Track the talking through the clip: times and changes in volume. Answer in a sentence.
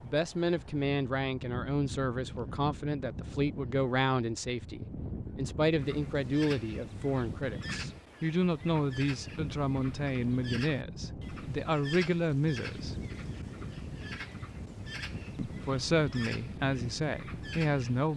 The talking can be heard from 0.0 to 12.9 s, at a steady volume; and briefly from 15.3 to 18.1 s.